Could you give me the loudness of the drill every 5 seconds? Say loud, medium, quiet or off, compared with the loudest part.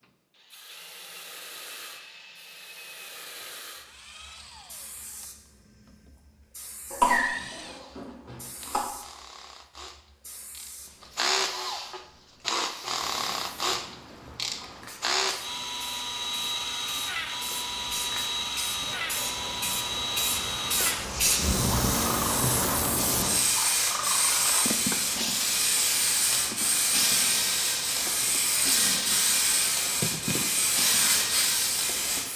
quiet, quiet, loud, loud, loud, loud, loud.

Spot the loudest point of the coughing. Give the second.
7 s.